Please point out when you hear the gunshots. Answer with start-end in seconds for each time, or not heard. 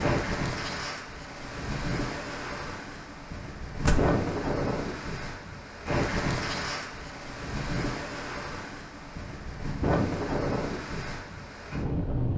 3.9-4.3.